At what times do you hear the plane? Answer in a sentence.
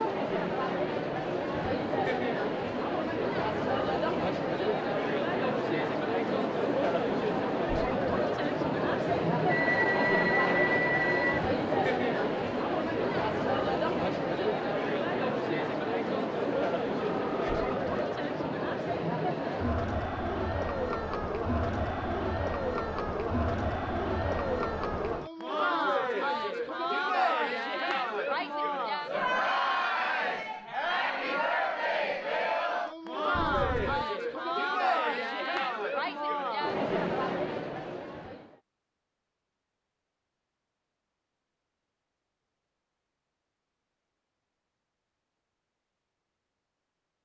The plane can't be heard in this clip.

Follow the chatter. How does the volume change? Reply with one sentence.
The loudness of the chatter stays about the same.